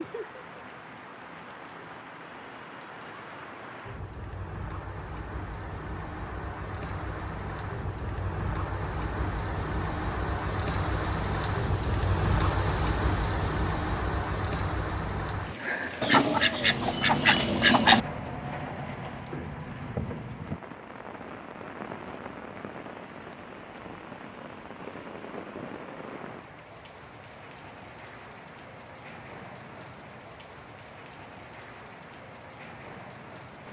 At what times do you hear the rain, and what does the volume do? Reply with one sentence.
You can hear the rain from 0.0 to 33.6 s, getting louder then quieter.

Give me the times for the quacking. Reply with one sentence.
The quacking can be heard from 16.0 to 18.0 s.